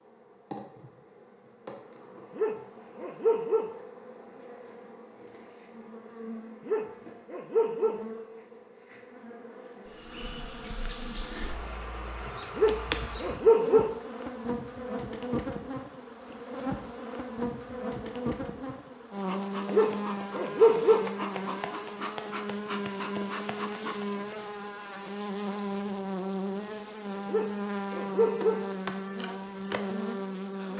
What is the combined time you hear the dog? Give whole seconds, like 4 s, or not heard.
7 s.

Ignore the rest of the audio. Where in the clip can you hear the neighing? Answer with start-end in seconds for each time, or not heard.
not heard.